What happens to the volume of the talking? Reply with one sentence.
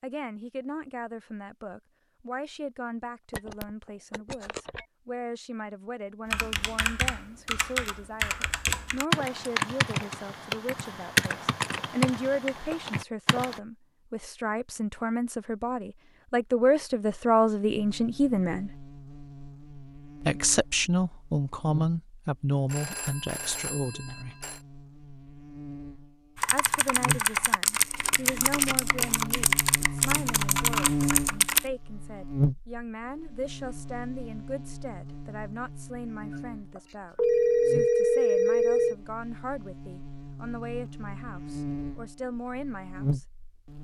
The loudness of the talking goes up, then down.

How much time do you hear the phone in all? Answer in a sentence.
You can hear the phone for 6 seconds altogether.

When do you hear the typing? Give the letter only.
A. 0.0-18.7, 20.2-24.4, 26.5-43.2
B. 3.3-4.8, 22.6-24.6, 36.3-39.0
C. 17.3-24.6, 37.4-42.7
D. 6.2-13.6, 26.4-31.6
D.